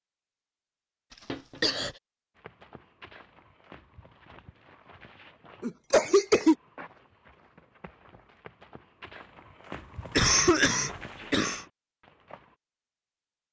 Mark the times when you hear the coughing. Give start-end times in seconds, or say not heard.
1.3-1.9, 5.6-6.5, 10.2-11.7.